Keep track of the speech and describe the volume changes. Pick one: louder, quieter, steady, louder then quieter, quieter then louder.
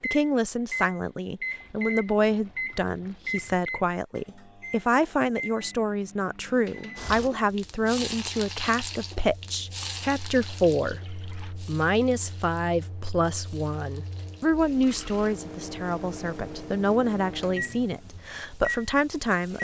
steady.